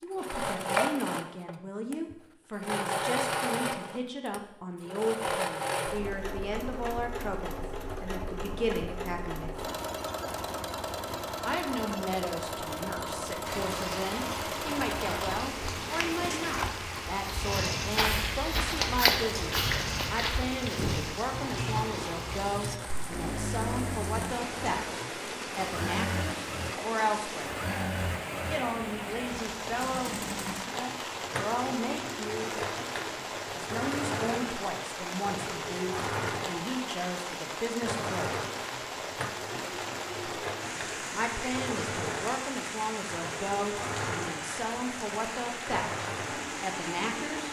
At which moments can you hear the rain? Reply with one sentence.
You can hear the rain from 13.4 to 47.4 s.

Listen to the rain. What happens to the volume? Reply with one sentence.
The loudness of the rain stays about the same.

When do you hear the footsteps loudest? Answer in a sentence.
The loudest moment of the footsteps is at 19 seconds.